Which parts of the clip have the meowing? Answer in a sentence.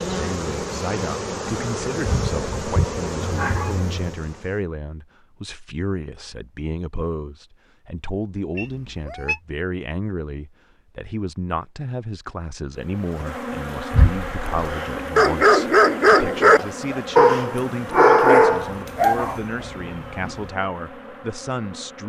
The meowing can be heard from 3.2 to 4.2 s, from 8.6 to 9.4 s and from 18.6 to 20.6 s.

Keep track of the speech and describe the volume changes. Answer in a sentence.
The loudness of the speech stays about the same.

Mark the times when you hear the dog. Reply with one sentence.
You can hear the dog from 13.9 to 19.4 s.